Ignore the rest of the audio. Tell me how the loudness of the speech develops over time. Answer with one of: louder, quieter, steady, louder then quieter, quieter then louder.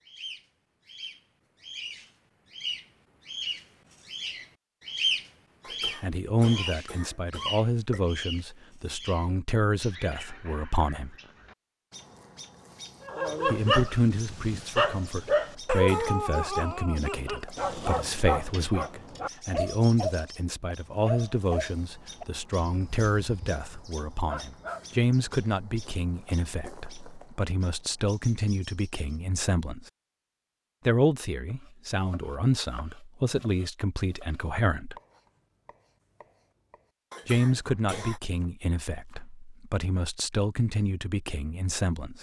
steady.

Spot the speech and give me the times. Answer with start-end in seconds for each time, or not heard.
6.0-11.2, 13.4-29.9, 30.9-35.0, 37.2-42.1.